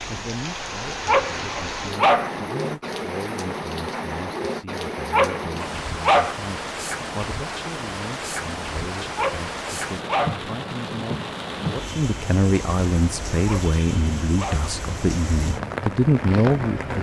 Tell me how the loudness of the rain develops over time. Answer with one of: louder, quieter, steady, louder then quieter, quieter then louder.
steady.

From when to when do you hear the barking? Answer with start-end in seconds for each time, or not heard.
1.1-2.3, 5.1-6.3, 9.2-10.4, 13.4-14.7.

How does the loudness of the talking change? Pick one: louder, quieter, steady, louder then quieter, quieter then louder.
louder.